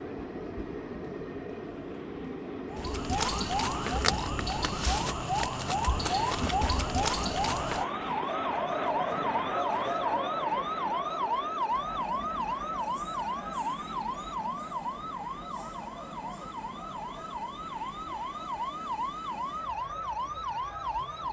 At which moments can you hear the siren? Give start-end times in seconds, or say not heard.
2.7-21.2.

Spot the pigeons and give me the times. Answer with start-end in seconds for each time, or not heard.
not heard.